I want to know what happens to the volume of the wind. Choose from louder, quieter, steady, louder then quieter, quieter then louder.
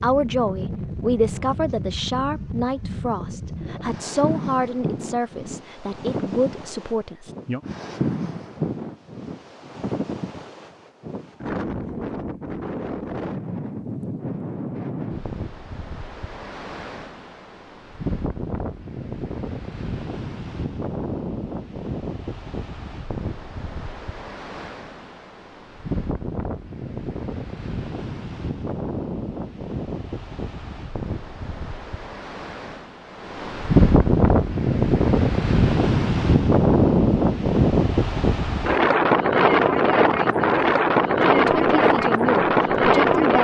louder.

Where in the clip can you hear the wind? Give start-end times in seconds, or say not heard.
0.0-43.3.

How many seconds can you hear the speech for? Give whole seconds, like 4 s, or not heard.
10 s.